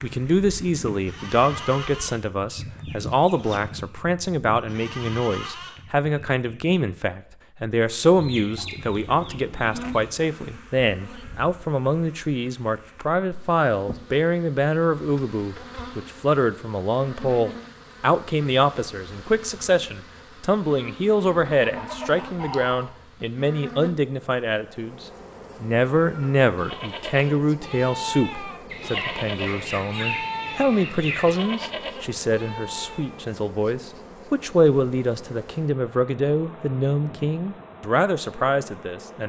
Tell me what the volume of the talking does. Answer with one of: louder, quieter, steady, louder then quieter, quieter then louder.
steady.